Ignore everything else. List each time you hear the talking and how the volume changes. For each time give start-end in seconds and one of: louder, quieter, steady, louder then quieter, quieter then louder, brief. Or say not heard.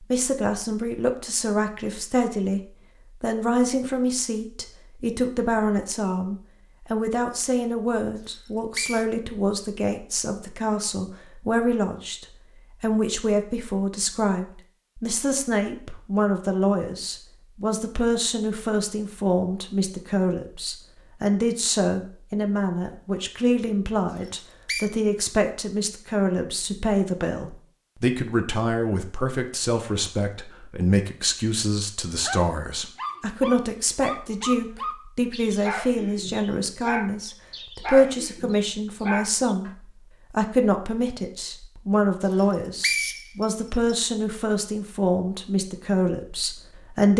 0.0-2.6 brief
3.2-47.1 steady.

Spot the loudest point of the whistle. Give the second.
43 s.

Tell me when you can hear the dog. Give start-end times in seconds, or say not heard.
32.2-39.8.